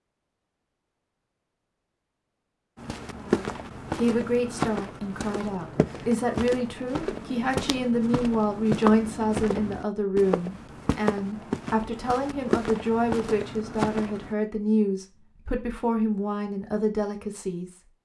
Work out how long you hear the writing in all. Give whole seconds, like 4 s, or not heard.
not heard.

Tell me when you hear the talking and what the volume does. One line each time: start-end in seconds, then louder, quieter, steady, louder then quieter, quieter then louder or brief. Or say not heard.
3.1-18.0 steady.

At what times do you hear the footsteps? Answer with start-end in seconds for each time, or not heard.
2.8-14.3.